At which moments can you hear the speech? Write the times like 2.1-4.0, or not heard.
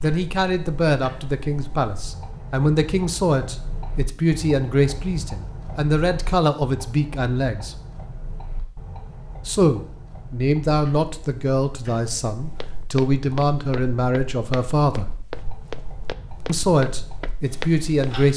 0.0-7.8, 9.4-15.1, 16.4-18.3.